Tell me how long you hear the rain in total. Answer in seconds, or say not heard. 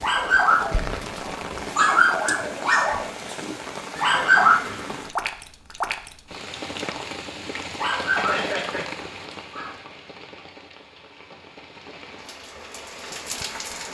14 s.